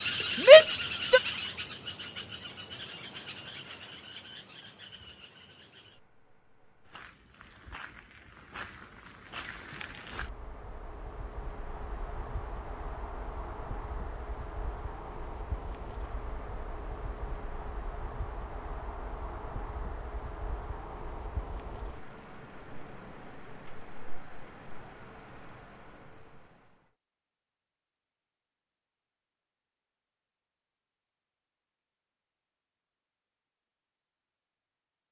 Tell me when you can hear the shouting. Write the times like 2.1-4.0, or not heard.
0.4-1.2.